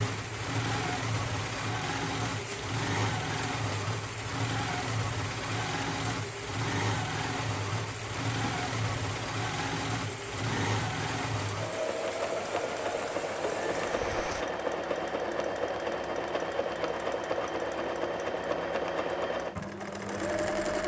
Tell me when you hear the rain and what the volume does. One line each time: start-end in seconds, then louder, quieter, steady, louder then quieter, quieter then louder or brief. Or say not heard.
0.0-14.4 steady.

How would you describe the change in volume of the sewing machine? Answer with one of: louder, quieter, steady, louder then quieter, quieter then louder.
steady.